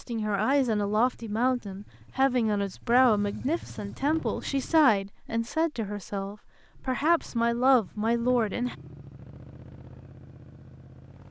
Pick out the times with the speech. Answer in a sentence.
The speech can be heard from 0.0 to 8.8 s.